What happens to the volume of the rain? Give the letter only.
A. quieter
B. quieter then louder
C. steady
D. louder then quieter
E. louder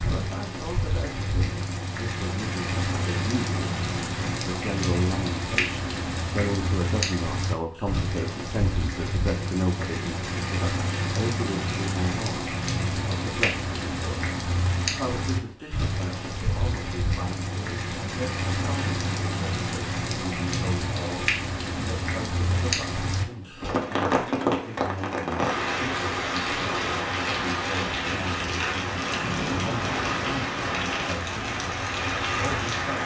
C.